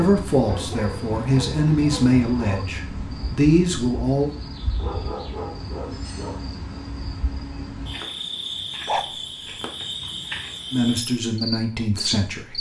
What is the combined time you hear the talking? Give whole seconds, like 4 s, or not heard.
6 s.